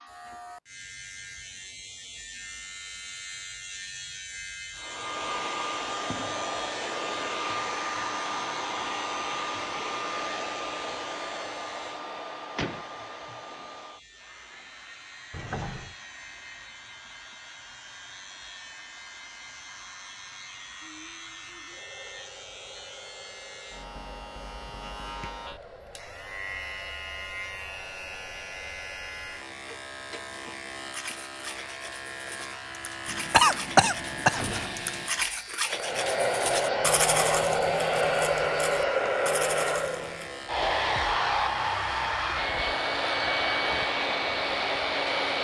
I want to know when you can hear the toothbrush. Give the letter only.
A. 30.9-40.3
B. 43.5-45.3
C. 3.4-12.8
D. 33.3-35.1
A.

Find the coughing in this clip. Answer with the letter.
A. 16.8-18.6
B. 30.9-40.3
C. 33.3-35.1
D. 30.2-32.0
C.